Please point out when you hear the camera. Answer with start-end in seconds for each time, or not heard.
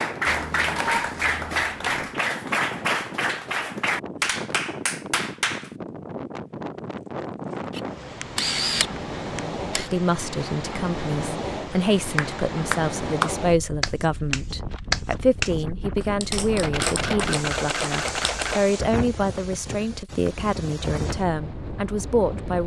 0.4-2.1, 7.8-9.9, 16.6-18.6.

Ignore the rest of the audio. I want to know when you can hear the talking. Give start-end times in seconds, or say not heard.
9.8-22.6.